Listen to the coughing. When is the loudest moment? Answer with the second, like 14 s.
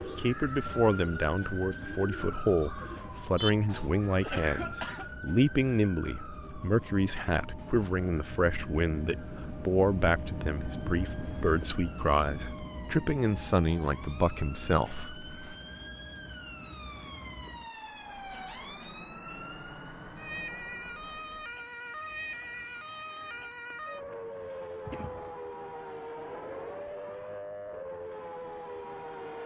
4 s.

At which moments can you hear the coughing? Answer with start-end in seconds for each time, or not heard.
3.6-5.0, 24.9-25.4.